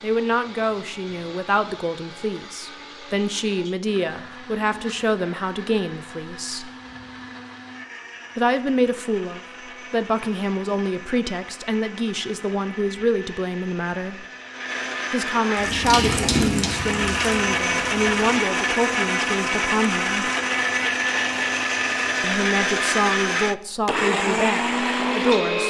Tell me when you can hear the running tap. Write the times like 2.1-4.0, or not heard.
15.6-18.2.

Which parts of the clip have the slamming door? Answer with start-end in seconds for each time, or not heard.
not heard.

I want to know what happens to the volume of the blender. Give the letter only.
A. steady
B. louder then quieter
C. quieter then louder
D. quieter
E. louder
E.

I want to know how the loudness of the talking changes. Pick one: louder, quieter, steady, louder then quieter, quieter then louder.
steady.